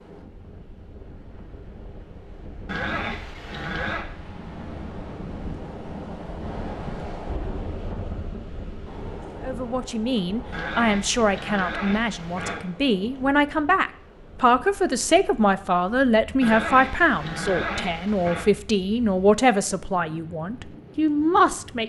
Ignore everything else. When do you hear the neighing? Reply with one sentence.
You can hear the neighing from 2.6 to 4.0 s, from 10.5 to 12.7 s and from 16.4 to 18.5 s.